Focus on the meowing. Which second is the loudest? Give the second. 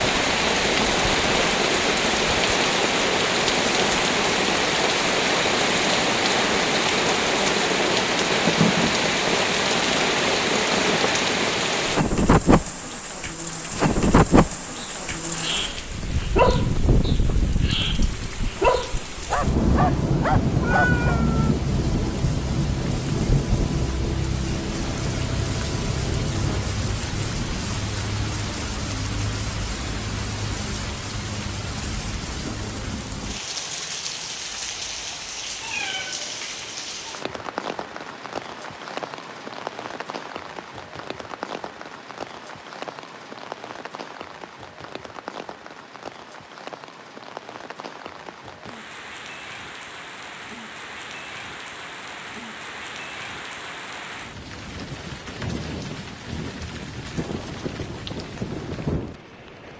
21 s.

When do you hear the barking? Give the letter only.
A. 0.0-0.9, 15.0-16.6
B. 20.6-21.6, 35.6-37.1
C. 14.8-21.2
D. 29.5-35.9
C.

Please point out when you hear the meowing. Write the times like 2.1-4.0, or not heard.
20.6-21.6, 35.6-37.1.